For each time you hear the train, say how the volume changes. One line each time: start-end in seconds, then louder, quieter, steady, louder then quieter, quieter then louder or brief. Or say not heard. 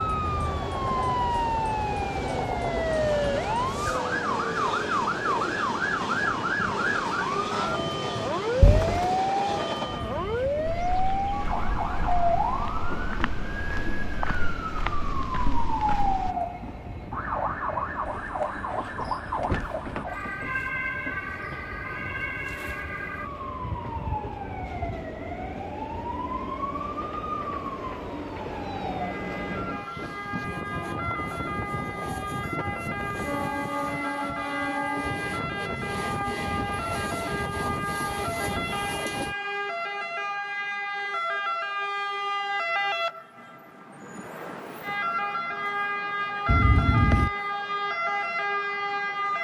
0.0-39.4 quieter then louder.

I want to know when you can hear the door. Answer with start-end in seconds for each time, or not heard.
8.6-9.1, 18.1-20.1, 46.5-47.3.